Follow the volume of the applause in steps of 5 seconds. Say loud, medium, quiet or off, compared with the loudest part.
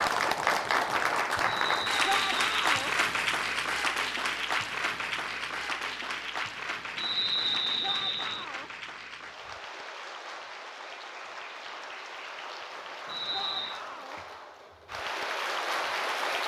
loud, medium, quiet, loud.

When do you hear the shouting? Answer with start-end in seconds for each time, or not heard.
2.0-3.0, 7.8-8.7, 13.3-14.2.